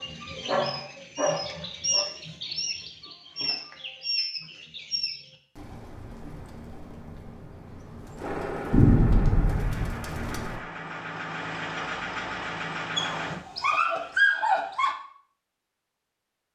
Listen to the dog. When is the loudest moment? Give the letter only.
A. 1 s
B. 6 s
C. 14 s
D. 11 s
C.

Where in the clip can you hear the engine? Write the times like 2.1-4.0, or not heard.
8.2-13.4.